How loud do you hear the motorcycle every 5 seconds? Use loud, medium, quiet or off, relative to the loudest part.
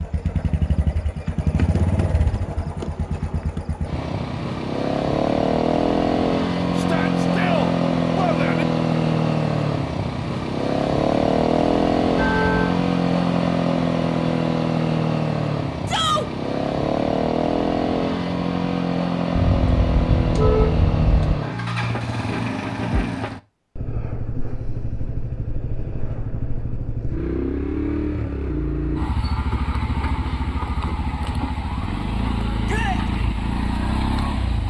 medium, loud, loud, loud, medium, medium, medium.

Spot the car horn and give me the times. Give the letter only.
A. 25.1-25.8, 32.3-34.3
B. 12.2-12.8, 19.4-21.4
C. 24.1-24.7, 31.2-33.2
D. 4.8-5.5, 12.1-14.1
B.